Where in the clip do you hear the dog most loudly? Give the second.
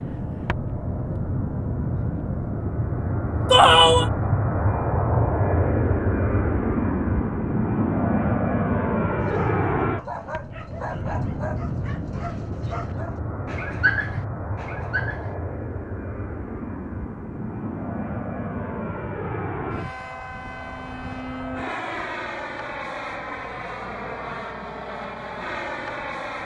14 s.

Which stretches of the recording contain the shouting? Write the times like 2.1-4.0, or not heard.
3.5-4.1.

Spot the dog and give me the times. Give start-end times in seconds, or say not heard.
9.2-15.3.